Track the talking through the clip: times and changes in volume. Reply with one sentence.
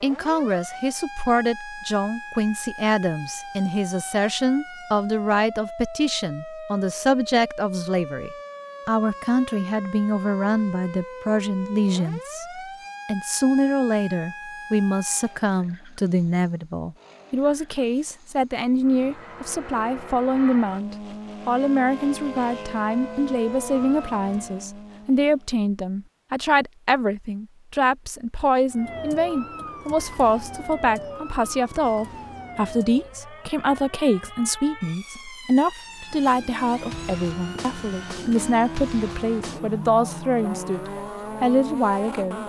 You can hear the talking from 0.0 to 42.4 s, at a steady volume.